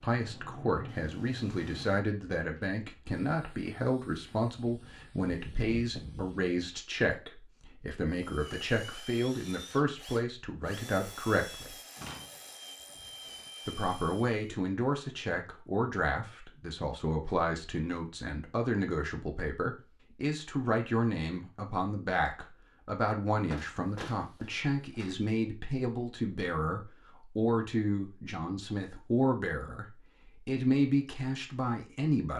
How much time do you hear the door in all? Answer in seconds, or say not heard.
3 s.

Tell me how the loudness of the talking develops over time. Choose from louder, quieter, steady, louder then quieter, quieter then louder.
steady.